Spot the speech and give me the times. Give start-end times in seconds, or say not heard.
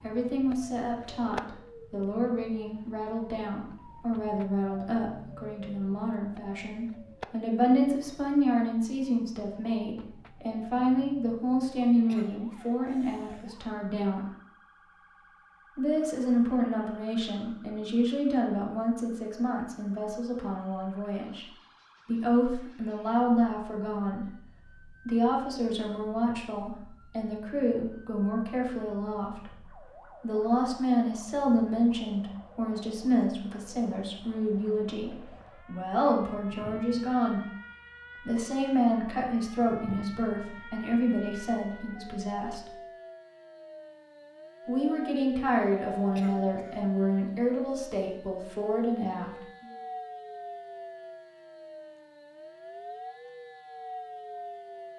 0.0-14.2, 15.8-21.4, 22.1-24.3, 25.0-37.4, 38.2-42.7, 44.6-49.6.